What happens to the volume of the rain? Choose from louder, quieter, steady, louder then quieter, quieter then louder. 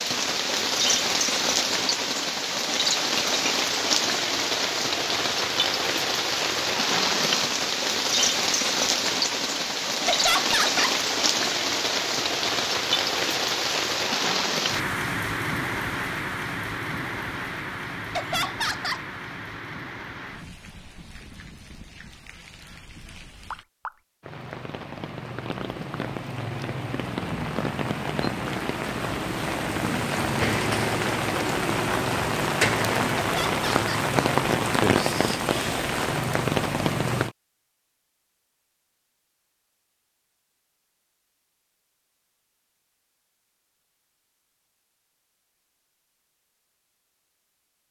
quieter then louder.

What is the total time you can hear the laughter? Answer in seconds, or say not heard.
3 s.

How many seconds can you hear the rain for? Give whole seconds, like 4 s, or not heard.
37 s.